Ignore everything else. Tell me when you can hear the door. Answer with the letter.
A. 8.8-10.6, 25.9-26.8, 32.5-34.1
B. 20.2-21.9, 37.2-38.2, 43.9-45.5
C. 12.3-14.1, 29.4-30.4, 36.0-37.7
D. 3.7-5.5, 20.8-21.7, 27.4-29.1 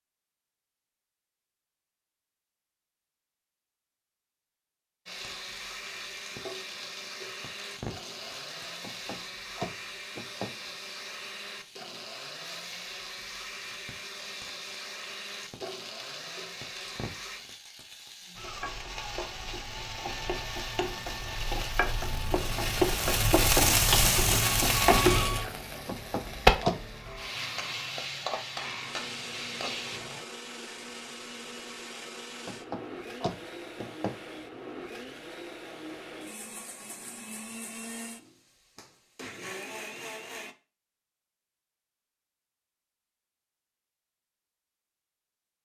A.